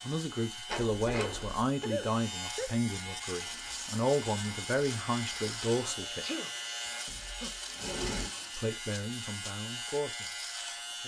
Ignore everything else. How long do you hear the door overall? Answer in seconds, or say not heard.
2 s.